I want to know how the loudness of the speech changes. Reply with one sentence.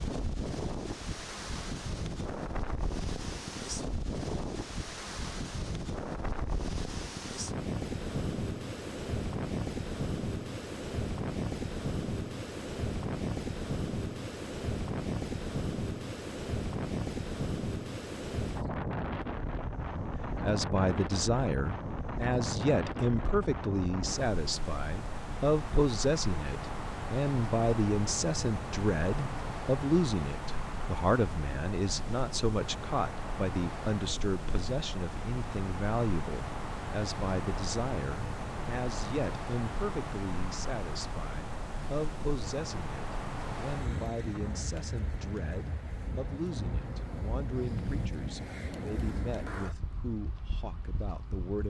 The loudness of the speech goes down.